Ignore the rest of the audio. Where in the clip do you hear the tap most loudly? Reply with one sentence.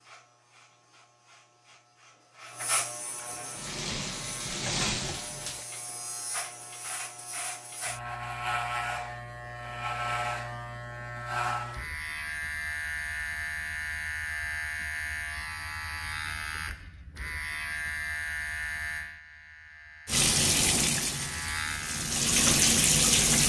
The volume of the tap peaks at 23 seconds.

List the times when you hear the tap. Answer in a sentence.
The tap can be heard from 3.5 to 5.7 s and from 20.1 to 23.4 s.